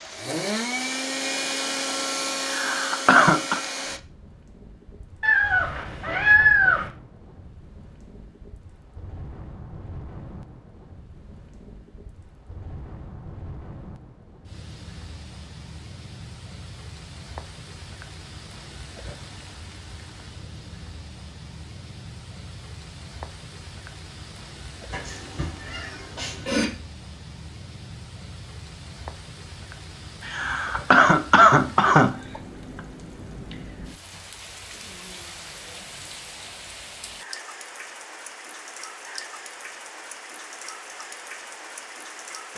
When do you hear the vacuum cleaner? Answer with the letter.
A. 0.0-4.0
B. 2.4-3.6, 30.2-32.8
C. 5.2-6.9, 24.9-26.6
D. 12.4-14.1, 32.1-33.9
A.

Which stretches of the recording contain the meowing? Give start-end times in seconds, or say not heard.
5.2-6.9, 24.9-26.6.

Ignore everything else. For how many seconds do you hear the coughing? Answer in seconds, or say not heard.
4 s.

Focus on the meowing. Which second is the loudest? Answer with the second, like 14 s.
6 s.